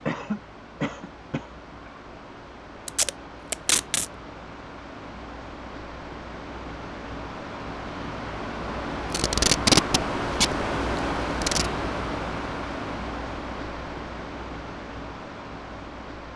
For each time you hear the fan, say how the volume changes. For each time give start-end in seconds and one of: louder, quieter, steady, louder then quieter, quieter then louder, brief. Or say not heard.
0.0-16.3 louder then quieter.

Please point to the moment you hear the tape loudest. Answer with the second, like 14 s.
10 s.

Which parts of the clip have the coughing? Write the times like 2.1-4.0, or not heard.
0.1-1.9.